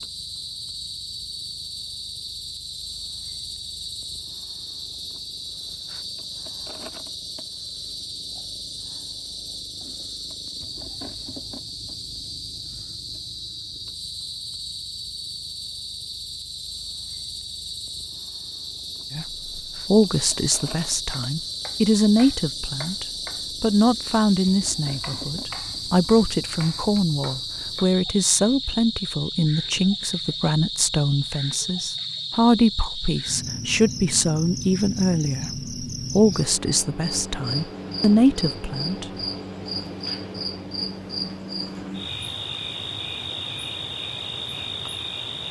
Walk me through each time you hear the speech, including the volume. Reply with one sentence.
The speech can be heard from 19.1 to 39.0 s, at a steady volume.